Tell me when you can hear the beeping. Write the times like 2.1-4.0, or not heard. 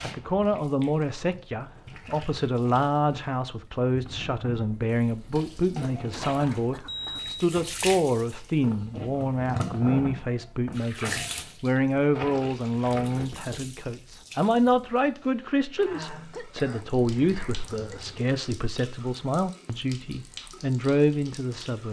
6.5-7.5.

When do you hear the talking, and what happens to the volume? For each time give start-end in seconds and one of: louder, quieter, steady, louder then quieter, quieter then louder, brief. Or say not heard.
0.0-21.8 steady.